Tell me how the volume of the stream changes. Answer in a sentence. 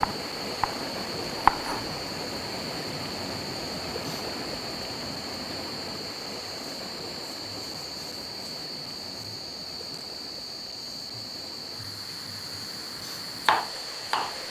The loudness of the stream goes down.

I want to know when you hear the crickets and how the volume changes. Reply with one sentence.
You can hear the crickets from 0.0 to 14.4 s, at a steady volume.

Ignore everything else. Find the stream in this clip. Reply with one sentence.
You can hear the stream from 0.0 to 14.4 s.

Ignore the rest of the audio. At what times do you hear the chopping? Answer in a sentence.
The chopping can be heard from 0.0 to 1.8 s and from 13.4 to 14.3 s.